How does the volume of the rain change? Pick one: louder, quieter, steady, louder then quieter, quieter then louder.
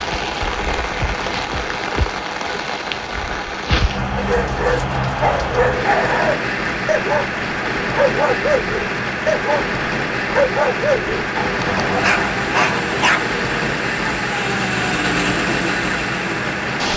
steady.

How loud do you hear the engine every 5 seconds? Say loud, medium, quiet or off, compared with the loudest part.
off, off, loud, loud.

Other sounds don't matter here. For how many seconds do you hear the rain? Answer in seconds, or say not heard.
17 s.